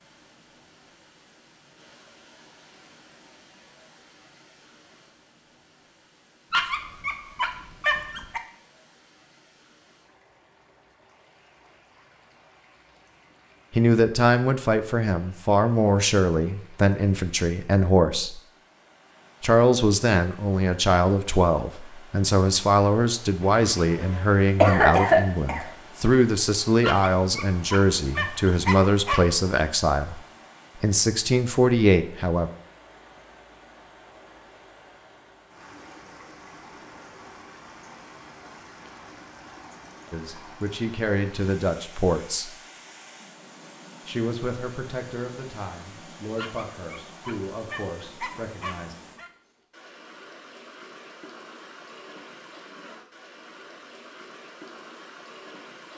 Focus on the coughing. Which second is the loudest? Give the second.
25 s.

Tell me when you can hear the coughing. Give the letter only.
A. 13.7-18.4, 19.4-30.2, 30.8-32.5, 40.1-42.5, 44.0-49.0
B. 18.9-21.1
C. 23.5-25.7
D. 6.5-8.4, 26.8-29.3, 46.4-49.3
C.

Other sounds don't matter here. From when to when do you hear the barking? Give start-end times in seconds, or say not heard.
6.5-8.4, 26.8-29.3, 46.4-49.3.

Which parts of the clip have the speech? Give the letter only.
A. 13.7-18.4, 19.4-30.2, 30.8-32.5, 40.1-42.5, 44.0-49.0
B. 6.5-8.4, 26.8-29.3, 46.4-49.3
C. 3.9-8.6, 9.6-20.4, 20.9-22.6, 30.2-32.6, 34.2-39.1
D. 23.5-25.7
A.